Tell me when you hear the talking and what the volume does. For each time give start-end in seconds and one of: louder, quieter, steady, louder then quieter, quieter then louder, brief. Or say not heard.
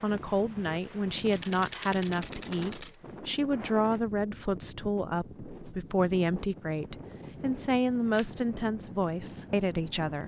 0.0-10.2 steady.